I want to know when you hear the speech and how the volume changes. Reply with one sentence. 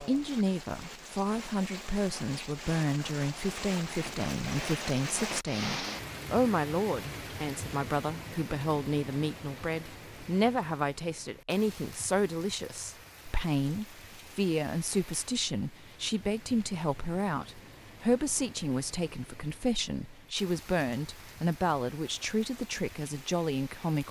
The speech can be heard from 0.0 to 24.0 s, at a steady volume.